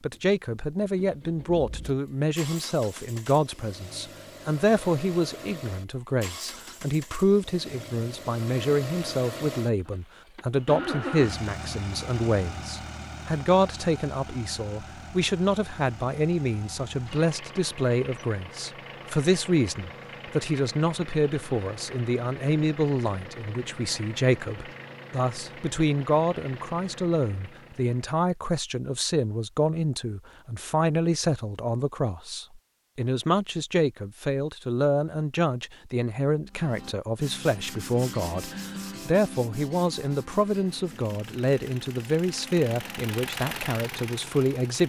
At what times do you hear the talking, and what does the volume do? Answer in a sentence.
You can hear the talking from 0.0 to 44.8 s, at a steady volume.